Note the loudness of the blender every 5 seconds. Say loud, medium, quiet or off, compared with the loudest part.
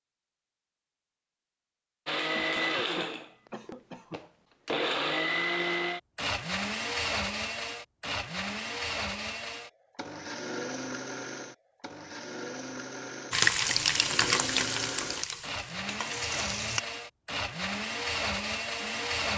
loud, loud, medium, loud.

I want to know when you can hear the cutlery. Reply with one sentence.
You can't hear the cutlery here.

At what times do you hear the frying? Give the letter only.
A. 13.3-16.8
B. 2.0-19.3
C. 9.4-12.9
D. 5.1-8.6
A.